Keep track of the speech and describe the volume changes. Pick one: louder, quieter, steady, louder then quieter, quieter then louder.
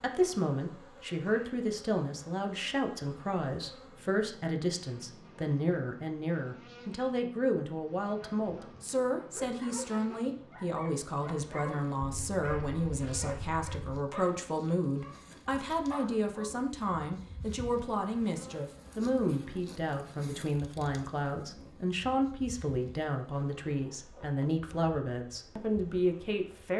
steady.